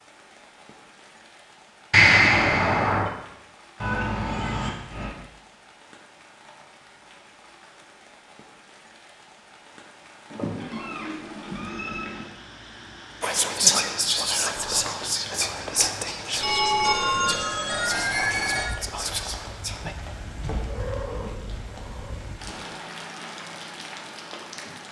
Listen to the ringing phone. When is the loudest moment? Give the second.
2 s.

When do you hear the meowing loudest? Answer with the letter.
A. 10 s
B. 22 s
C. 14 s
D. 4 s
D.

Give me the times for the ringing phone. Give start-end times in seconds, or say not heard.
1.9-3.1, 16.4-18.7.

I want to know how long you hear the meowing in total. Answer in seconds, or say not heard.
5 s.